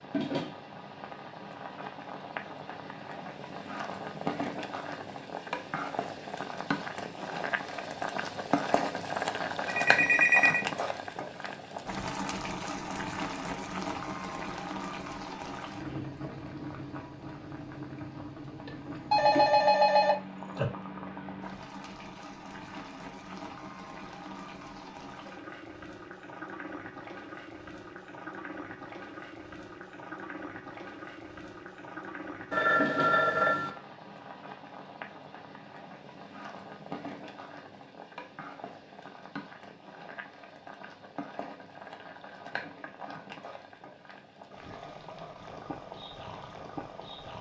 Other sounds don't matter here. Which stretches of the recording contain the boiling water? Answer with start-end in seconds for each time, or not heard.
0.0-47.3.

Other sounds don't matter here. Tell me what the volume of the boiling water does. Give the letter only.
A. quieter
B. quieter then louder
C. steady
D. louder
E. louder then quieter
A.